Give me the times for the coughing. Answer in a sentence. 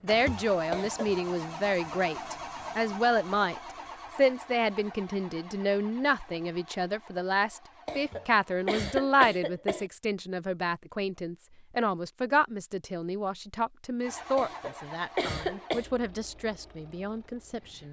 The coughing can be heard from 0.7 to 1.1 s, from 7.8 to 9.9 s and from 14.3 to 15.8 s.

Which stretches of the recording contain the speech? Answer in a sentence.
You can hear the speech from 0.0 to 17.8 s.